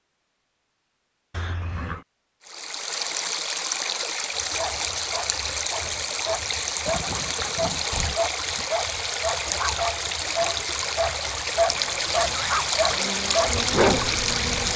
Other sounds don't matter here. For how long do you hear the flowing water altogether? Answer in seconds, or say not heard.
12 s.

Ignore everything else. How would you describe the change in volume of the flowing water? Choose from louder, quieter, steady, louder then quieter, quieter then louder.
steady.